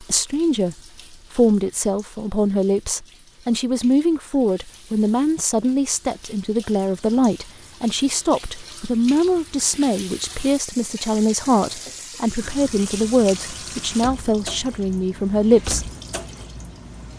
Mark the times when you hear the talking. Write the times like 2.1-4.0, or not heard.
0.0-15.8.